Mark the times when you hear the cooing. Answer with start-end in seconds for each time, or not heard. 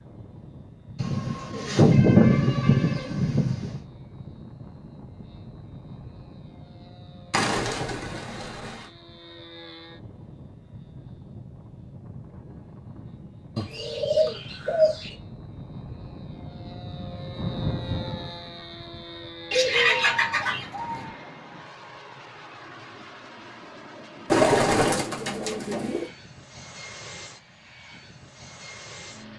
0.9-3.8, 7.3-8.8, 13.6-15.2, 19.5-21.1, 24.3-26.1.